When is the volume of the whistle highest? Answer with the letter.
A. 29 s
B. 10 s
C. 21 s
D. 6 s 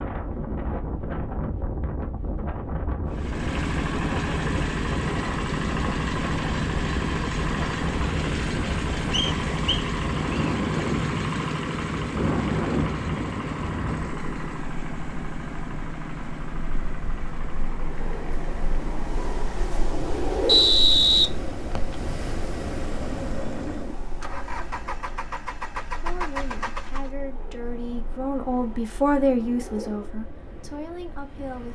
C.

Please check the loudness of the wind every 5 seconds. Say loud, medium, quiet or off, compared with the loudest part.
loud, loud, loud, medium, loud, quiet, quiet.